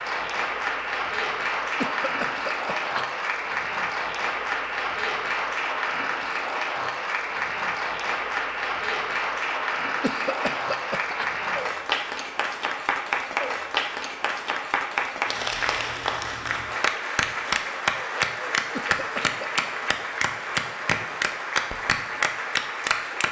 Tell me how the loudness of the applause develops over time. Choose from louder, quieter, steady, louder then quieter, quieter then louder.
steady.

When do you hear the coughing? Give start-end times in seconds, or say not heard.
1.8-3.0, 10.0-11.2, 18.7-19.6.